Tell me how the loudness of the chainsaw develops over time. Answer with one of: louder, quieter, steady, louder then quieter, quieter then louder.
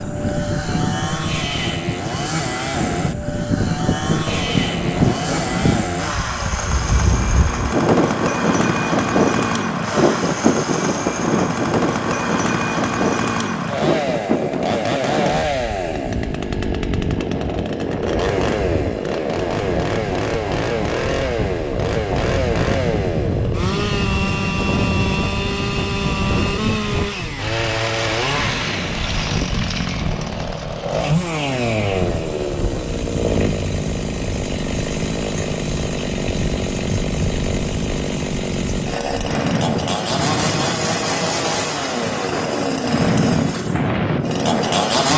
steady.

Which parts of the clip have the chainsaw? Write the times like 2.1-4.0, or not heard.
0.0-45.1.